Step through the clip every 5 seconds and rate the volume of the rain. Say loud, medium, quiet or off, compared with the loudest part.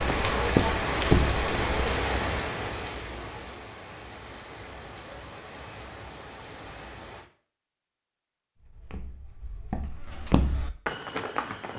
loud, quiet, off.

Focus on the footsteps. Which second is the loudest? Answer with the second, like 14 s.
1 s.